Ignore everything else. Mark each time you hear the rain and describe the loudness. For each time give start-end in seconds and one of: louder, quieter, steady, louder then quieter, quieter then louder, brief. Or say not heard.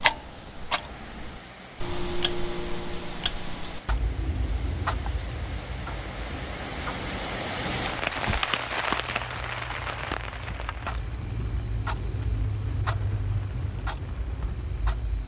0.0-15.2 louder then quieter.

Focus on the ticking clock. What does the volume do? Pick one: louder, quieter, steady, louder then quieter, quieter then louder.
quieter then louder.